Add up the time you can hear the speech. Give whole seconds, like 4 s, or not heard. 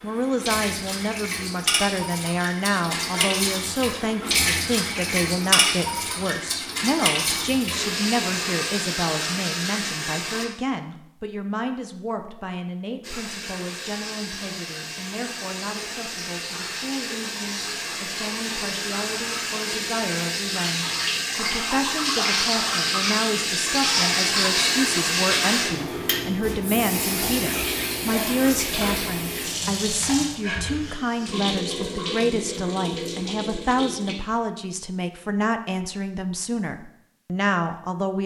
38 s.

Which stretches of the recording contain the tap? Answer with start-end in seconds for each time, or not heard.
0.0-10.4, 13.0-34.1.